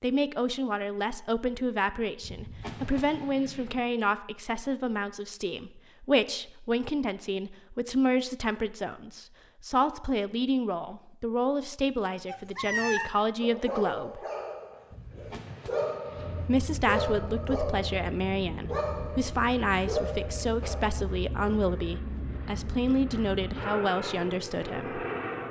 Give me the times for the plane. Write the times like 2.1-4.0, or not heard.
16.1-25.4.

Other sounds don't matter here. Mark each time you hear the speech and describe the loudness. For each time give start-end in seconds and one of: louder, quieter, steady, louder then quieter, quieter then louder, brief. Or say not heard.
0.0-14.2 steady
16.4-25.1 steady.